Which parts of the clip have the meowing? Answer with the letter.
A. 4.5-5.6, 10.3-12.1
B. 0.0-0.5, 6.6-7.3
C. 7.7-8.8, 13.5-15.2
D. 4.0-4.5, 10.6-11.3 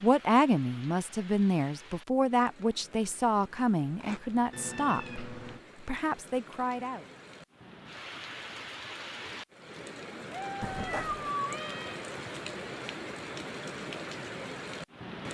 A.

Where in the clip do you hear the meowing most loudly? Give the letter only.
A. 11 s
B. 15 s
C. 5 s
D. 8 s
A.